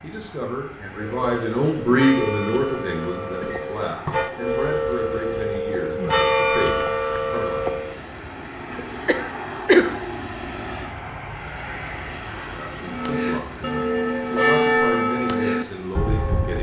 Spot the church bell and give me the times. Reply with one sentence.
The church bell can be heard from 0.9 to 8.0 s and from 12.8 to 16.5 s.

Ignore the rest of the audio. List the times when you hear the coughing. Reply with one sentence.
The coughing can be heard from 2.9 to 4.2 s and from 8.7 to 9.9 s.